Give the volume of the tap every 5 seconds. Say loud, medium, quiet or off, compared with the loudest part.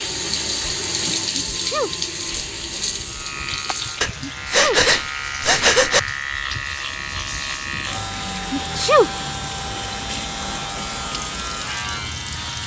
loud, medium, medium.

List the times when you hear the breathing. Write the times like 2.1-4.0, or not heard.
4.0-6.0.